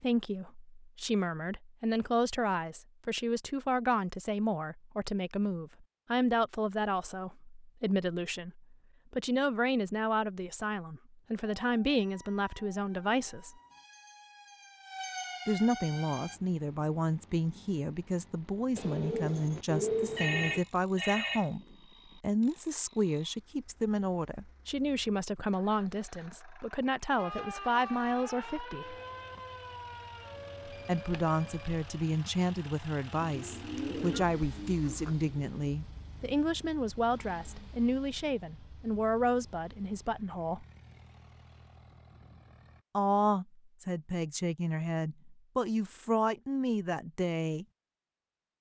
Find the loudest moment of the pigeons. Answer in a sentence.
The loudest moment of the pigeons is at 20 seconds.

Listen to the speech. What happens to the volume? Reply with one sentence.
The volume of the speech stays about the same.